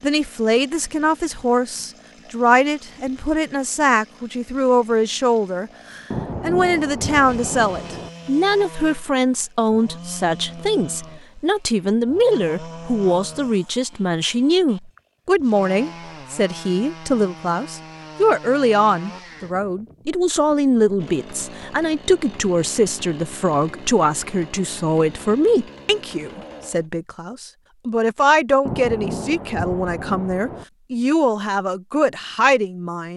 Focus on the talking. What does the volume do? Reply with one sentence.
The volume of the talking stays about the same.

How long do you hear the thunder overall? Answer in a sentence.
You can hear the thunder for 4 seconds altogether.